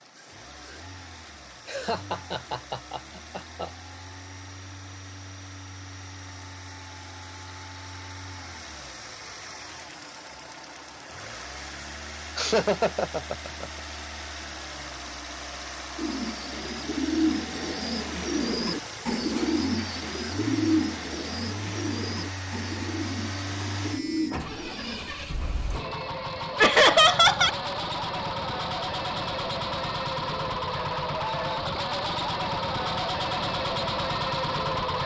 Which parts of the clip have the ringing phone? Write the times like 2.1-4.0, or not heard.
not heard.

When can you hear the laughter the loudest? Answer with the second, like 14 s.
27 s.